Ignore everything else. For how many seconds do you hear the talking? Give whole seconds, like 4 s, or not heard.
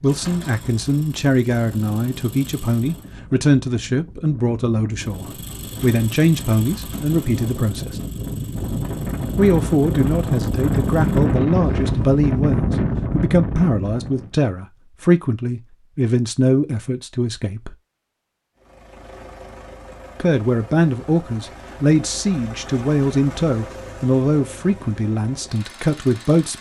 23 s.